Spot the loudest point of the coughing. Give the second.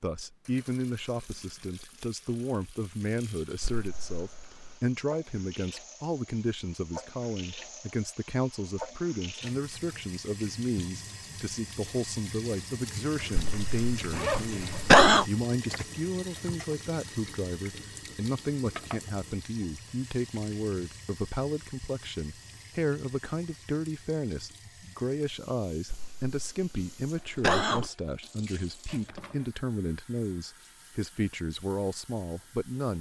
15 s.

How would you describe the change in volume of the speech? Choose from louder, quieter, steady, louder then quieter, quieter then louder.
steady.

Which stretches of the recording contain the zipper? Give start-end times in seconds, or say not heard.
13.2-14.8, 28.9-29.4.